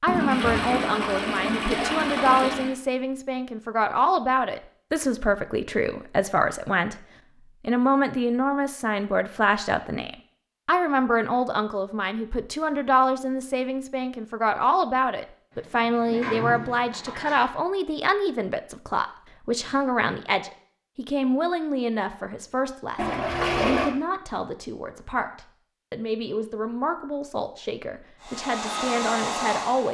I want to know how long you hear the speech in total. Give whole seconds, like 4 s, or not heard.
30 s.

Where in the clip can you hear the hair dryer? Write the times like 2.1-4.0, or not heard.
28.2-29.9.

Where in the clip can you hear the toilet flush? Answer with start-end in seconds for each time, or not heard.
0.1-2.8, 15.6-17.5, 22.9-23.9.